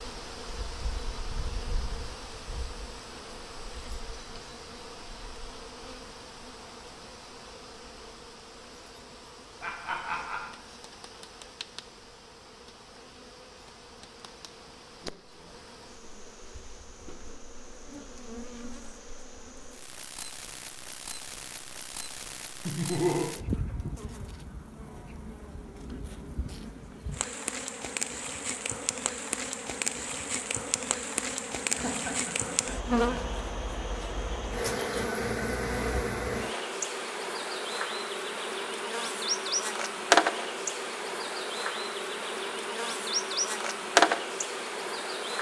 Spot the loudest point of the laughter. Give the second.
23 s.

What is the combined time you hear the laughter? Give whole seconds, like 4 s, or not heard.
3 s.